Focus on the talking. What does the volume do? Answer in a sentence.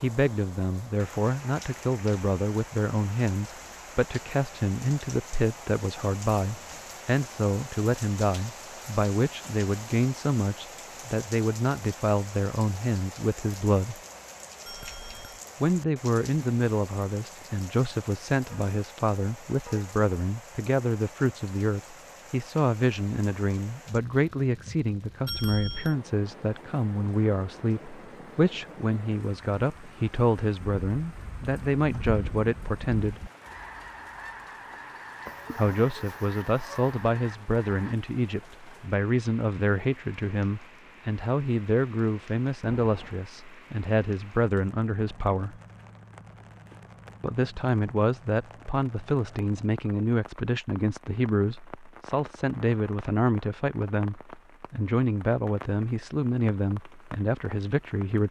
The loudness of the talking stays about the same.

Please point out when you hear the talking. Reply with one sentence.
You can hear the talking from 0.0 to 13.9 s, from 15.6 to 33.2 s, from 35.5 to 45.6 s and from 47.2 to 58.2 s.